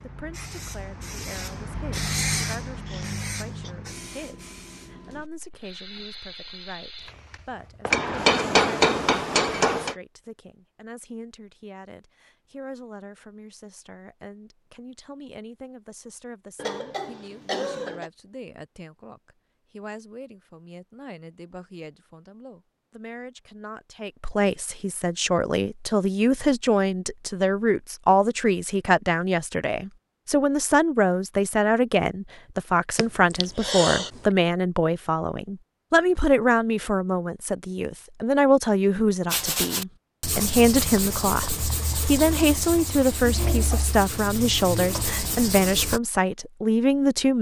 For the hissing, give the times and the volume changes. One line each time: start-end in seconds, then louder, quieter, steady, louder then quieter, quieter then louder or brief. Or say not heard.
0.0-9.9 quieter.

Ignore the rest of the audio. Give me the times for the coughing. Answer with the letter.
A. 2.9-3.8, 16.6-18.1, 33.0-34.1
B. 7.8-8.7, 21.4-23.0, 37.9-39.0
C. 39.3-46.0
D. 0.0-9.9
A.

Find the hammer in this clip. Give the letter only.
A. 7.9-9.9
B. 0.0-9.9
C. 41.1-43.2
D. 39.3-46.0
A.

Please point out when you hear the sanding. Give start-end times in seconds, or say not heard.
39.3-46.0.